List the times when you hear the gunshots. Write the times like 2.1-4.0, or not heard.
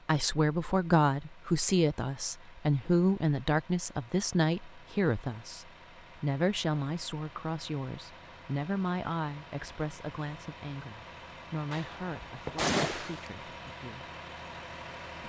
11.7-13.4.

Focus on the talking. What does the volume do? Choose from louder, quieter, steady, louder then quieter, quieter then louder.
quieter.